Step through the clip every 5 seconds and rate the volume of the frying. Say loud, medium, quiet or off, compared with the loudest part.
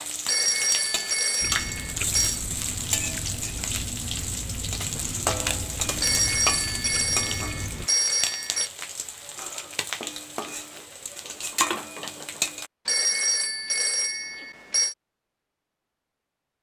loud, loud, loud, off.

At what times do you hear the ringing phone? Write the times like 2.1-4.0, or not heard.
0.2-2.4, 6.0-8.7, 12.8-14.9.